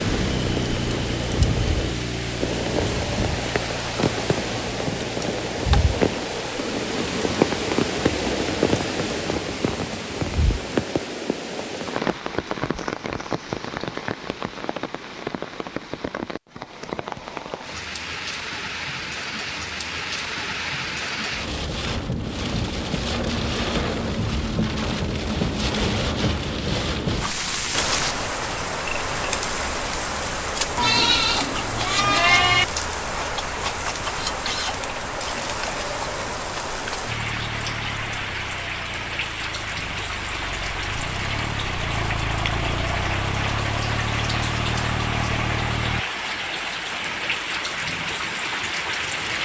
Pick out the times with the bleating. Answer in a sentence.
You can hear the bleating from 30.8 to 32.6 s.